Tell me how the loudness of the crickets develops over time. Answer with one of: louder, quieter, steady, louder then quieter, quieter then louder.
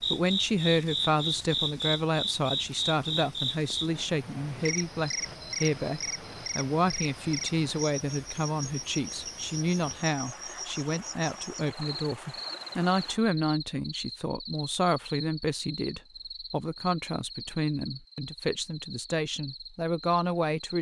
quieter.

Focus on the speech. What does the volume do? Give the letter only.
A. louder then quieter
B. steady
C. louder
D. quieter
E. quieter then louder
B.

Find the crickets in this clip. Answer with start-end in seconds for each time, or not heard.
0.0-20.7.